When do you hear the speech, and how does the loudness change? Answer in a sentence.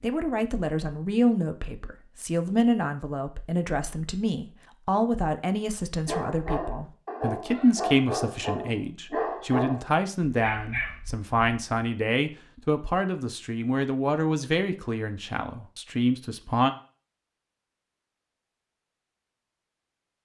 You can hear the speech from 0.0 to 16.7 s, at a steady volume.